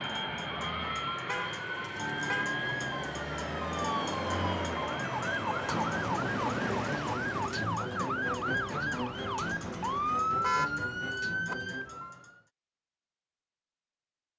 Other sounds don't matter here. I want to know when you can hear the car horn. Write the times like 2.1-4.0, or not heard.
1.2-2.5, 10.2-11.6.